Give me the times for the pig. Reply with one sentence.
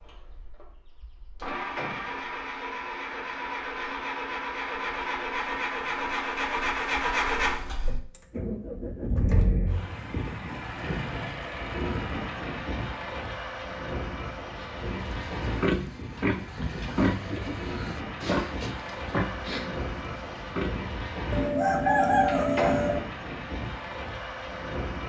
The pig can be heard from 14.6 to 20.9 s.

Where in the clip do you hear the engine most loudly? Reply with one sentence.
The volume of the engine peaks at 7 seconds.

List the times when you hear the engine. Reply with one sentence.
You can hear the engine from 0.0 to 25.0 s.